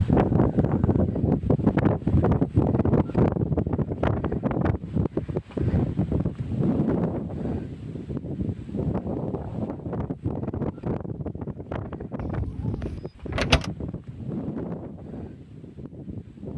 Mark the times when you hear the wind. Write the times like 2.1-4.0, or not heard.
0.0-16.5.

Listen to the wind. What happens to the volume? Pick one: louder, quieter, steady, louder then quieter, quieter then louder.
quieter.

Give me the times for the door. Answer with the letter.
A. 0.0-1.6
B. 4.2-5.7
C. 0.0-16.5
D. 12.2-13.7
D.